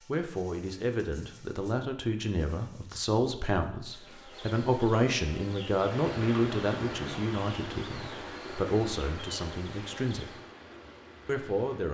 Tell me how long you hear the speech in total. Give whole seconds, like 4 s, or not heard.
11 s.